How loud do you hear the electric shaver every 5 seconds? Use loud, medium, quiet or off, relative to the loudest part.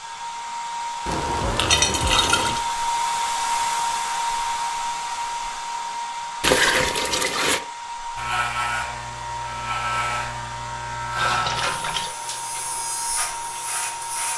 off, loud, loud.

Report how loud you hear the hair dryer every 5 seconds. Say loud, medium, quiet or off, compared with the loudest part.
loud, medium, medium.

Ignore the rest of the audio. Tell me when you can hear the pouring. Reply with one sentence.
The pouring can be heard from 1.1 to 2.6 s, from 6.4 to 7.6 s and from 11.2 to 12.1 s.